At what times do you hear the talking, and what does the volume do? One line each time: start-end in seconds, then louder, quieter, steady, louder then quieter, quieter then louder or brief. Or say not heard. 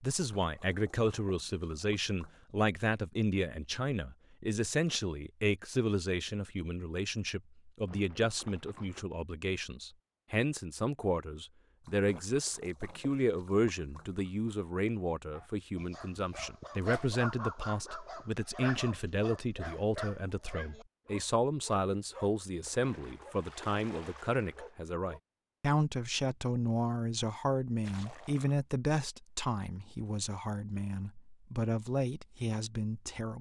0.0-33.3 steady.